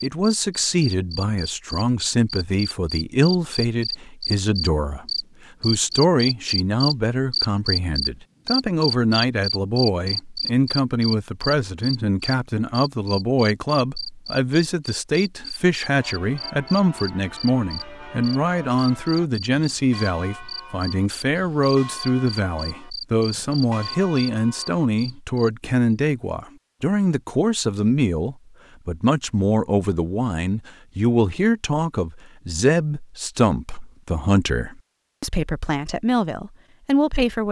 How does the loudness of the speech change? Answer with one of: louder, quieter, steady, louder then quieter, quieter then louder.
steady.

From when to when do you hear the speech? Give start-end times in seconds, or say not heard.
0.0-37.4.